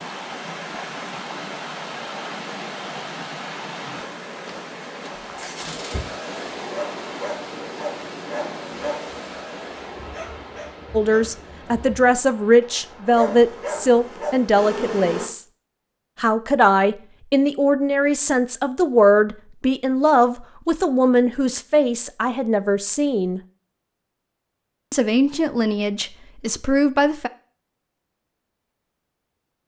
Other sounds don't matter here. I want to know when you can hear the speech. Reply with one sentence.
You can hear the speech from 10.9 to 15.4 s, from 16.1 to 23.4 s and from 24.9 to 27.3 s.